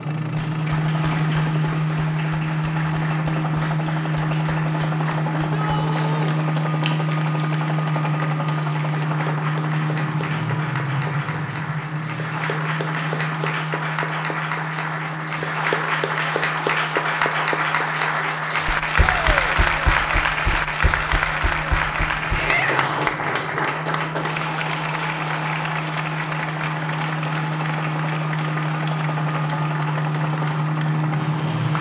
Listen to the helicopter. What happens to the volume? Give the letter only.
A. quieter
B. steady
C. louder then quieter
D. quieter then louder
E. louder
D.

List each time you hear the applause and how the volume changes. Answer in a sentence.
You can hear the applause from 0.1 to 31.7 s, getting louder then quieter.